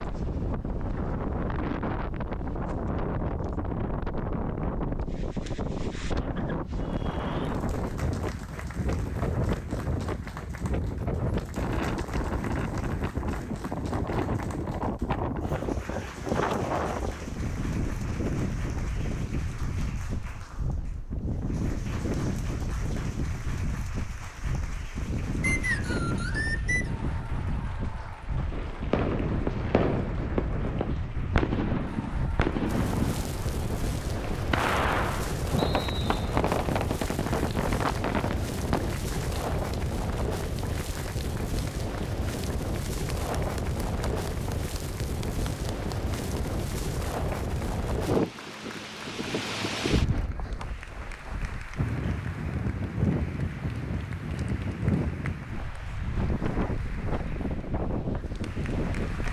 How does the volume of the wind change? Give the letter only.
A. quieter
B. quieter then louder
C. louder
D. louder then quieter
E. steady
E.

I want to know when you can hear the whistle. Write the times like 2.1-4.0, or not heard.
25.4-26.9, 35.5-36.2.